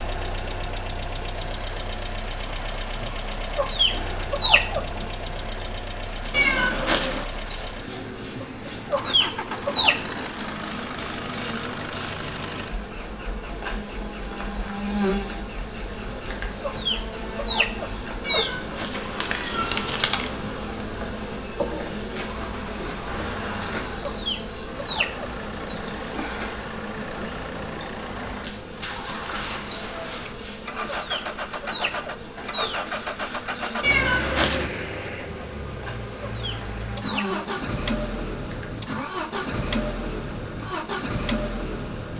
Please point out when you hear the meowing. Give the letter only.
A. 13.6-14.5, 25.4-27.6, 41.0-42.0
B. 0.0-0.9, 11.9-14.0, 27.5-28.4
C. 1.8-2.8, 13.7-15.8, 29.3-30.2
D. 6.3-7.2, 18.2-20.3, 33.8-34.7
D.